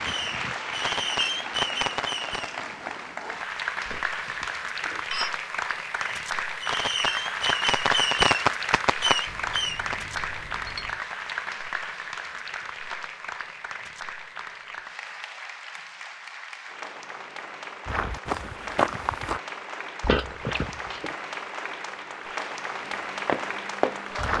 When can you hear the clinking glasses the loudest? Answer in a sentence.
The loudest moment of the clinking glasses is at 20 seconds.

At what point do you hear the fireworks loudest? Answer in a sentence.
The loudest moment of the fireworks is at 8 seconds.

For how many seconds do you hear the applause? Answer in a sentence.
You can hear the applause for 24 seconds altogether.